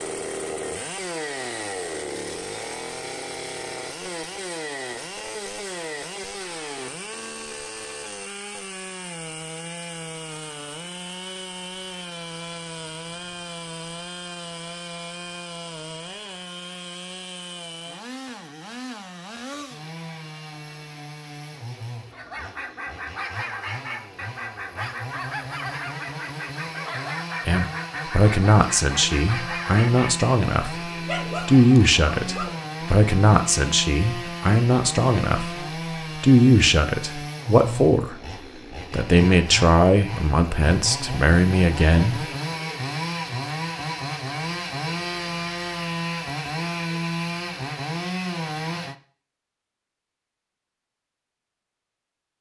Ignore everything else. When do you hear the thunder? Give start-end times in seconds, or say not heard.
not heard.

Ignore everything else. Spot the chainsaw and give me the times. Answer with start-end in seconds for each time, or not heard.
0.0-49.0.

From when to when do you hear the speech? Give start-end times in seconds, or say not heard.
27.4-38.2, 38.9-42.3.